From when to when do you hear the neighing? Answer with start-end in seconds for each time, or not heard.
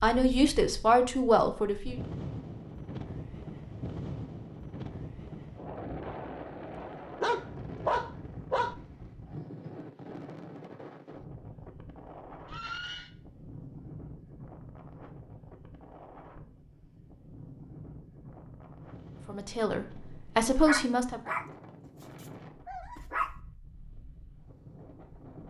12.4-13.1.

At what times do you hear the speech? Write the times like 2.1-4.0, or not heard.
0.0-2.0, 19.2-21.2.